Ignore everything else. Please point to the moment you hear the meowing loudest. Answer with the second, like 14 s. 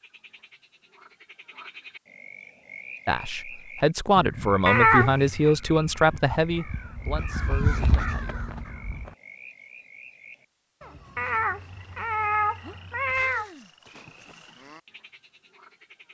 5 s.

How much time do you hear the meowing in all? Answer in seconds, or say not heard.
3 s.